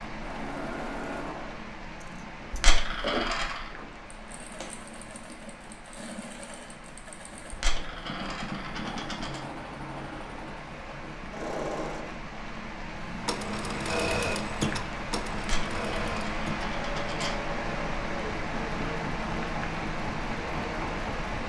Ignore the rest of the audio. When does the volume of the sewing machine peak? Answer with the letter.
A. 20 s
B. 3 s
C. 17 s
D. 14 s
D.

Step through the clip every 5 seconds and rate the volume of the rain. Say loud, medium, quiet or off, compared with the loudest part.
medium, quiet, medium, loud, loud.